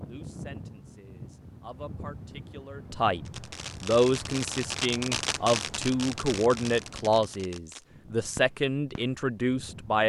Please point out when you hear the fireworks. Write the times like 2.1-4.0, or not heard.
3.2-9.2.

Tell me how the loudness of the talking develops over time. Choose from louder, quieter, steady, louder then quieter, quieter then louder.
louder.